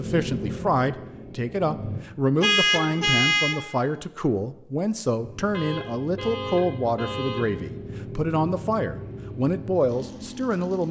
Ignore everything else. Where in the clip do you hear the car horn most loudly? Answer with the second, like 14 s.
3 s.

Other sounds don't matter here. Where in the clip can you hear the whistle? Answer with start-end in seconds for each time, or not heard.
not heard.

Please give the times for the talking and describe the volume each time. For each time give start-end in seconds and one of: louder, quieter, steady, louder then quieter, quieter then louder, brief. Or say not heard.
0.0-10.8 steady.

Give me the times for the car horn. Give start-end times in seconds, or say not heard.
2.4-3.6, 5.5-7.5.